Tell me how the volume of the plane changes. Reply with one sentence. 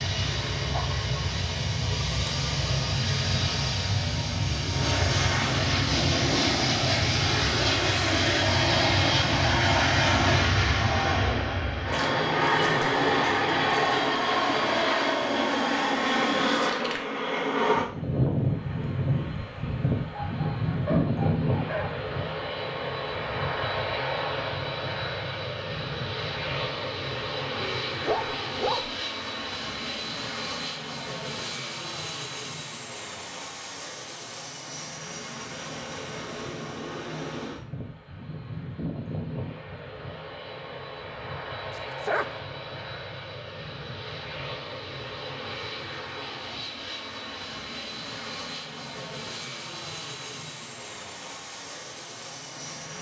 The volume of the plane goes down.